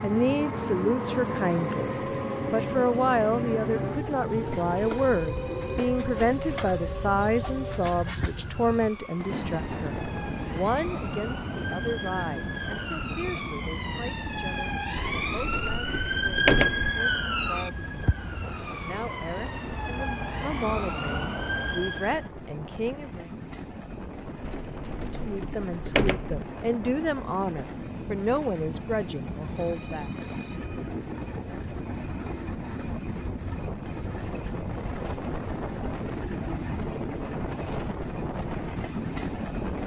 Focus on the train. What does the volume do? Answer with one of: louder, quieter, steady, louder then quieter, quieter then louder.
quieter then louder.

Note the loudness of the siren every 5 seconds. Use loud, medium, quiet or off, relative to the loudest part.
medium, medium, medium, loud, loud, off, off, off.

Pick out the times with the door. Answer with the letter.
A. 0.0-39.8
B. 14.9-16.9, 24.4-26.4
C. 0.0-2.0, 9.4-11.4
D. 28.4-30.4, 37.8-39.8
B.